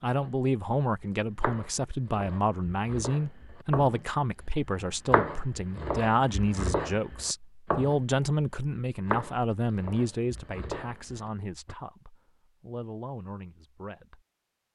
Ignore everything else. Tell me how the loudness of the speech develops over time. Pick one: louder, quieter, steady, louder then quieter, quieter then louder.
quieter.